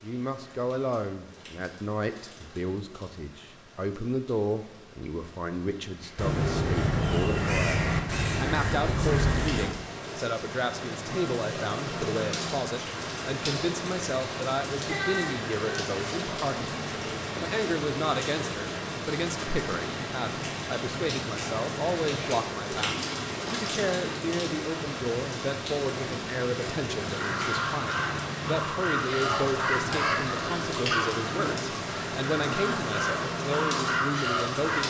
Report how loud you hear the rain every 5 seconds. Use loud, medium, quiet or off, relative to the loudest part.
quiet, medium, loud, loud, loud, loud, loud.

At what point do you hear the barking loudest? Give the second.
31 s.